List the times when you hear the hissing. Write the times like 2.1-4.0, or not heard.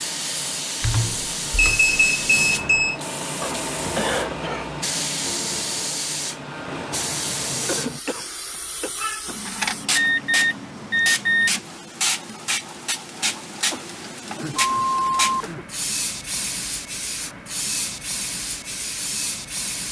0.0-19.8.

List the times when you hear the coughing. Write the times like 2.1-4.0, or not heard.
3.4-4.8, 7.7-8.9, 13.7-15.7.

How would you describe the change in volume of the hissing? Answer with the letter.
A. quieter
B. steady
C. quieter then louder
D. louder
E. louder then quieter
B.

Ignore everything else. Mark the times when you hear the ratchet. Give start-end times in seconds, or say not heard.
not heard.